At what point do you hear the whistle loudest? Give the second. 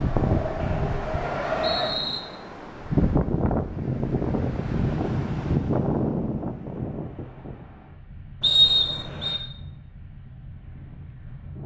9 s.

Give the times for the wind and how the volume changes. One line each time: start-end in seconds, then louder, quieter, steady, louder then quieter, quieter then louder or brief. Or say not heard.
0.0-11.6 louder then quieter.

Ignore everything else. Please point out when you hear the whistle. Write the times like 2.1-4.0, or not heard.
0.6-2.2, 8.4-9.4.